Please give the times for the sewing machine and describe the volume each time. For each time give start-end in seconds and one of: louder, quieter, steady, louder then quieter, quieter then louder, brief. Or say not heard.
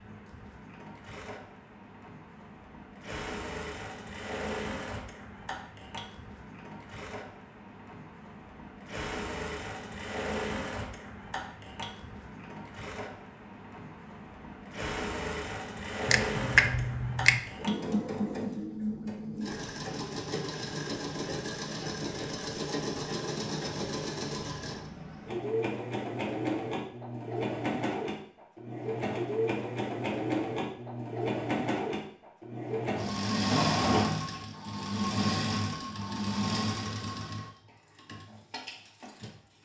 0.0-39.3 louder.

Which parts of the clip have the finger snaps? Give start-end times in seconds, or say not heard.
16.1-17.4.